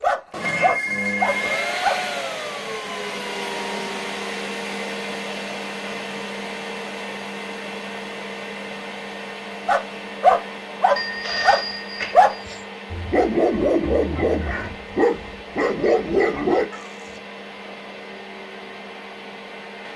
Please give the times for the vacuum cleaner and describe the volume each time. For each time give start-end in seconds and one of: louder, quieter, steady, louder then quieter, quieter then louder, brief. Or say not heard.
0.0-19.9 quieter.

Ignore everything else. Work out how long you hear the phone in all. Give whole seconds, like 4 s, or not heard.
3 s.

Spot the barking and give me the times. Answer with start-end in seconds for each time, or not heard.
0.0-2.0, 9.7-16.8.